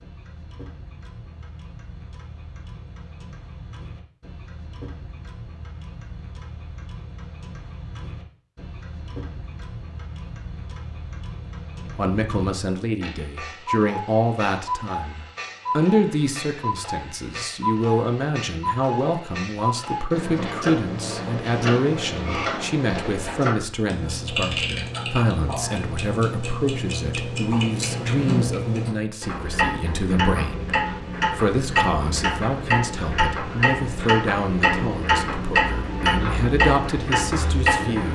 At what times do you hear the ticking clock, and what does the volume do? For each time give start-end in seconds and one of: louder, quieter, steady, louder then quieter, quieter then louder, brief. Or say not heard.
0.0-38.1 louder.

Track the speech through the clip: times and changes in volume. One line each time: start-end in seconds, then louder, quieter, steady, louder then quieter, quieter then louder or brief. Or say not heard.
11.8-38.1 steady.